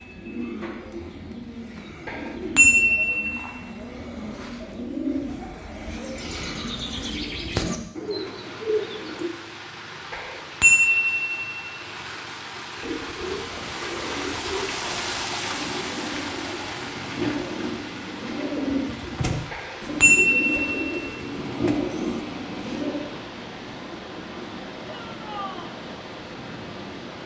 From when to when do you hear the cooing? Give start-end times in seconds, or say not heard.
0.0-9.3, 12.8-23.0.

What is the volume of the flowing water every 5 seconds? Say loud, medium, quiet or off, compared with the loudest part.
off, medium, loud, loud, loud, loud.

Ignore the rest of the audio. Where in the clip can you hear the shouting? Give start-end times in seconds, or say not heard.
24.9-25.8.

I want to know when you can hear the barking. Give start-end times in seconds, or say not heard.
not heard.